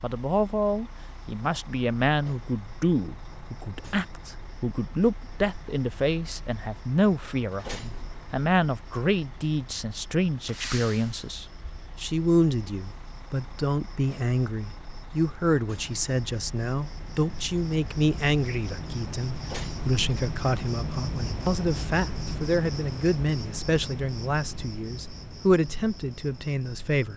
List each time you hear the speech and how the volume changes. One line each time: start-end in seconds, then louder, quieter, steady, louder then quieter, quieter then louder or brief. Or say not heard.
0.0-27.1 steady.